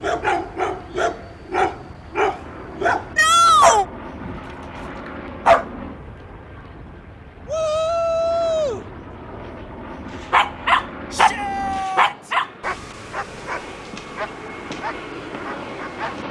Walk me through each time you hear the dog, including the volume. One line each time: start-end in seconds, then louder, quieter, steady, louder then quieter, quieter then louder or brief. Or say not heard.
0.0-5.7 louder then quieter
10.3-16.2 quieter.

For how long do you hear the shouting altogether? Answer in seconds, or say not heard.
3 s.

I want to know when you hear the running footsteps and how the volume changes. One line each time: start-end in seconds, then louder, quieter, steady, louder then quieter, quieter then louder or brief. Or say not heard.
not heard.